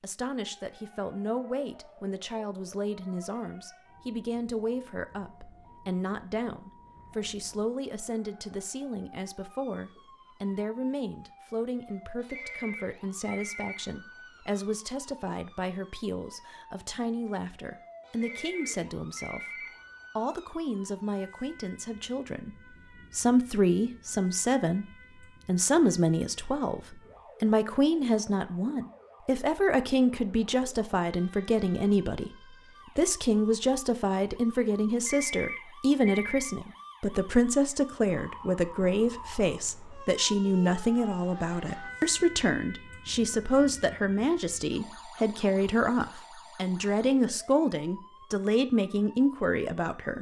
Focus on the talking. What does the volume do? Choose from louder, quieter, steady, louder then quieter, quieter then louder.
louder.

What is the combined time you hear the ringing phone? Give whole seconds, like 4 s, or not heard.
5 s.